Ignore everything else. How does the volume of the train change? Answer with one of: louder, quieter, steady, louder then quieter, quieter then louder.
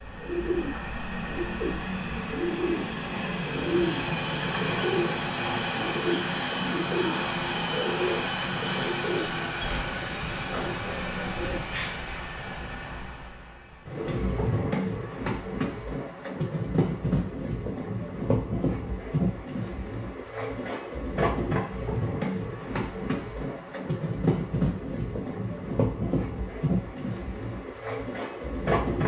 steady.